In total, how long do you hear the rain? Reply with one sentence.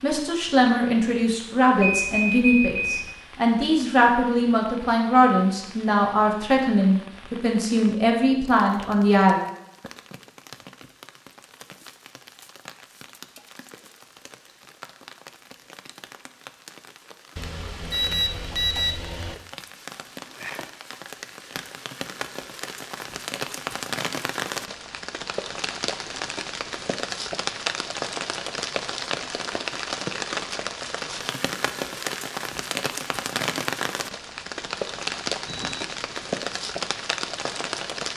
The rain can be heard for 38 seconds in total.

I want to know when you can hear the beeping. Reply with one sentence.
The beeping can be heard from 1.8 to 3.1 s, from 17.4 to 19.4 s and from 35.5 to 35.9 s.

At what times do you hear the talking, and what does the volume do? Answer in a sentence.
You can hear the talking from 0.0 to 9.4 s, at a steady volume.